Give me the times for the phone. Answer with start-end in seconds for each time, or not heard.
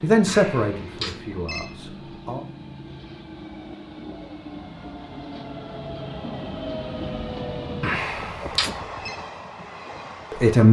0.2-1.6, 7.8-9.2.